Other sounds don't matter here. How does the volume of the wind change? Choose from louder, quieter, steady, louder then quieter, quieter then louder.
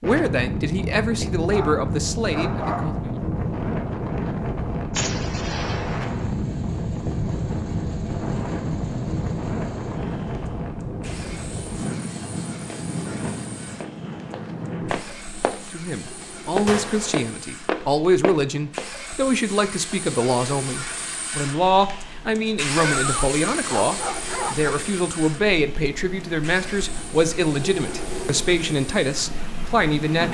quieter then louder.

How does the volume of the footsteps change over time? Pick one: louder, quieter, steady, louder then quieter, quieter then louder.
louder.